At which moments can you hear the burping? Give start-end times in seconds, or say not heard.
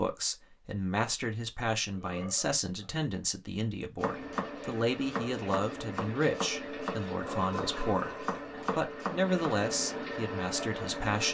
1.6-3.0, 7.2-8.8.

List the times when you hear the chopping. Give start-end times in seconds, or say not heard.
4.0-9.6.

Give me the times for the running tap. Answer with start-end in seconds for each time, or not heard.
4.0-11.2.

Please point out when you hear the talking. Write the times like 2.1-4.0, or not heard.
0.0-11.2.